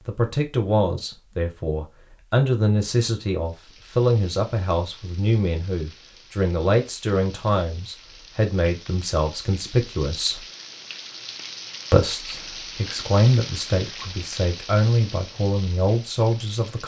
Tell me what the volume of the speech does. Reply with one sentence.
The volume of the speech stays about the same.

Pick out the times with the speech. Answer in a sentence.
You can hear the speech from 0.1 to 10.4 s and from 11.9 to 16.8 s.